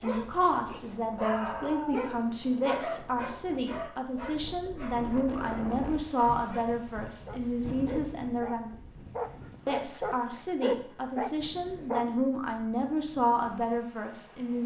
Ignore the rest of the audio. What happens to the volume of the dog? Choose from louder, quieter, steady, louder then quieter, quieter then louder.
quieter then louder.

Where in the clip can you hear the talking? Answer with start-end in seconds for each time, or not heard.
0.0-8.7, 9.7-14.6.